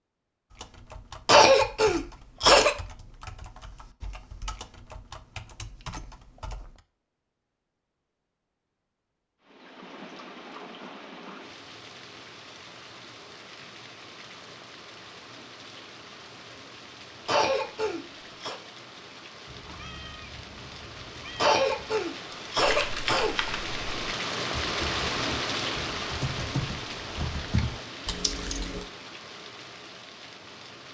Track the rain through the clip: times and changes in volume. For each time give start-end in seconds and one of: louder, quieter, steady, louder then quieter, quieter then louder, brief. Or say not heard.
9.4-30.8 louder then quieter.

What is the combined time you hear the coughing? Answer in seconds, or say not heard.
5 s.